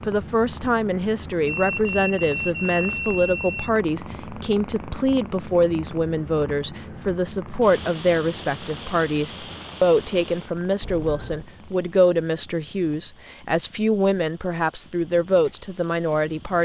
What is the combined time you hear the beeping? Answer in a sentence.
You can hear the beeping for 3 seconds altogether.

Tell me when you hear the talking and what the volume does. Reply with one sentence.
The talking can be heard from 0.1 to 16.5 s, at a steady volume.